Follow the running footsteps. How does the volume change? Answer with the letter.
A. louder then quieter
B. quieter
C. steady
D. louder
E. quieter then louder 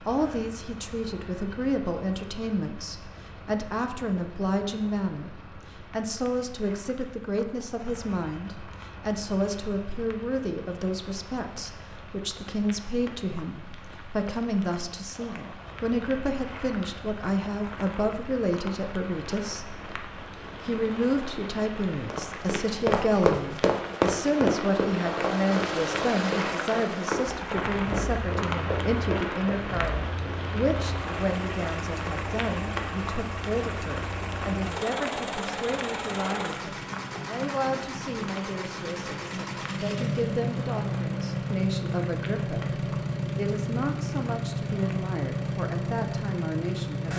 B.